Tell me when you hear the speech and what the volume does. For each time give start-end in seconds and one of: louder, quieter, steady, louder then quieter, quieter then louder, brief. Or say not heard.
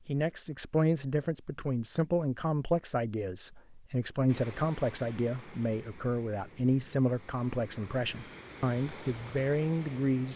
0.1-10.3 steady.